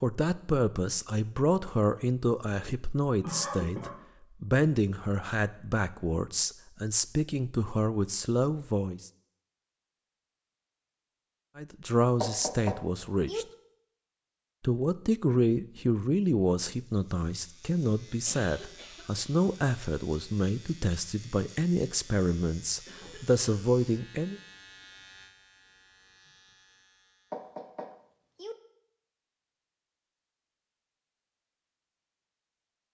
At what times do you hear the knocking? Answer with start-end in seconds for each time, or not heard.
12.2-13.4, 27.3-28.6.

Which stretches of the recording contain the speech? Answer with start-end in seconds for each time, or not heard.
0.0-9.1, 11.6-13.4, 14.6-24.4.